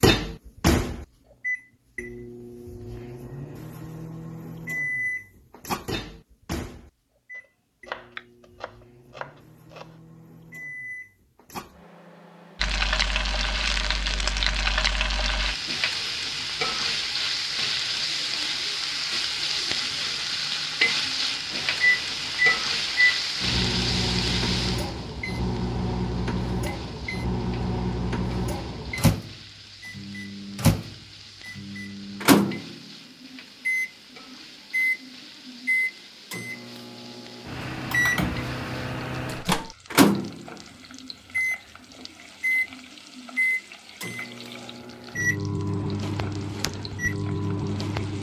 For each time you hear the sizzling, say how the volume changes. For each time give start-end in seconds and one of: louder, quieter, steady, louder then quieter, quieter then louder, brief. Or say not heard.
12.6-48.1 quieter.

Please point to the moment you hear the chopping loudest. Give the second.
8 s.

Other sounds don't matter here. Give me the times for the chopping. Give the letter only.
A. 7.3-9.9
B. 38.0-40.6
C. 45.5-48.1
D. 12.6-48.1
A.